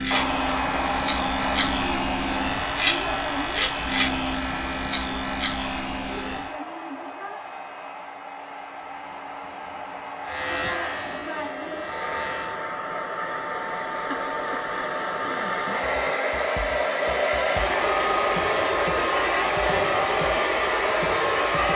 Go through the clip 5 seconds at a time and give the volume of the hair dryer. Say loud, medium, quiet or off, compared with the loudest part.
medium, quiet, medium, loud, loud.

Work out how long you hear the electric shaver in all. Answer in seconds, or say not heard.
9 s.